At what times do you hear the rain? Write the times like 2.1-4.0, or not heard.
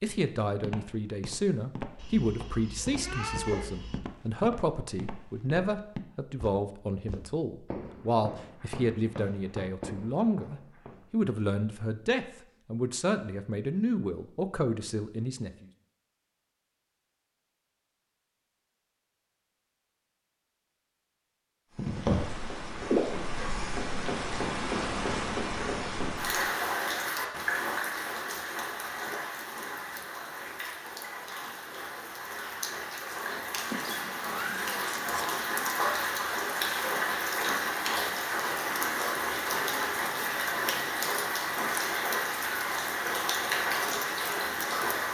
21.8-45.0.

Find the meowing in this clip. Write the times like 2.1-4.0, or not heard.
1.9-4.0, 33.6-35.5.